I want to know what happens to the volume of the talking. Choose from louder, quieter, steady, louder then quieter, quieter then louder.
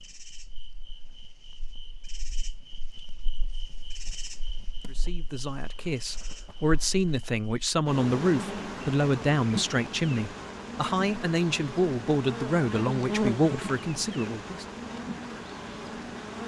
steady.